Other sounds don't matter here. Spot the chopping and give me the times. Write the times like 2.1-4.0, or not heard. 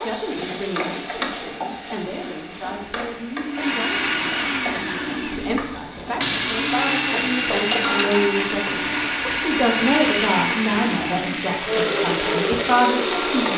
not heard.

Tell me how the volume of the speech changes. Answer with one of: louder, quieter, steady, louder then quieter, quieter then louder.
louder.